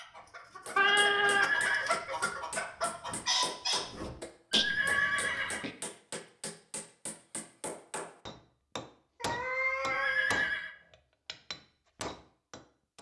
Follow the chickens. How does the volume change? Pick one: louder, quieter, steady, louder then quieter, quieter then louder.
louder.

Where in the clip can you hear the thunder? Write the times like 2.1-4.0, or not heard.
not heard.